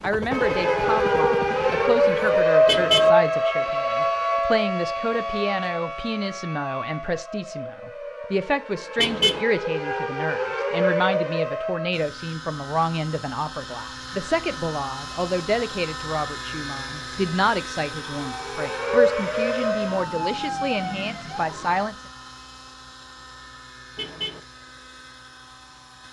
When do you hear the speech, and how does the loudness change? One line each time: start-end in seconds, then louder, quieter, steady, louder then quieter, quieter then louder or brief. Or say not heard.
0.0-21.9 steady.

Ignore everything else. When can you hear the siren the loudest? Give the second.
3 s.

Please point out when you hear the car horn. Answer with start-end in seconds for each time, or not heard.
2.6-3.1, 8.9-9.4, 23.9-24.4.